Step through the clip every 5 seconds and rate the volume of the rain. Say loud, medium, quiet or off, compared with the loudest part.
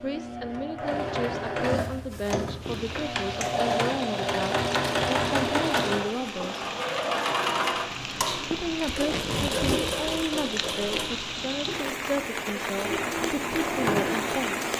medium, loud, loud.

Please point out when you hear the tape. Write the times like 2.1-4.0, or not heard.
8.9-9.9.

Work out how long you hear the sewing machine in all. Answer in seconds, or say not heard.
15 s.